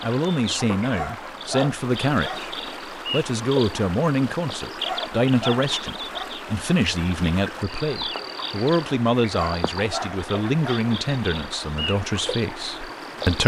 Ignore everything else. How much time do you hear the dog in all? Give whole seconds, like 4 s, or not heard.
5 s.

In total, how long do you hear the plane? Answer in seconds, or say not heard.
not heard.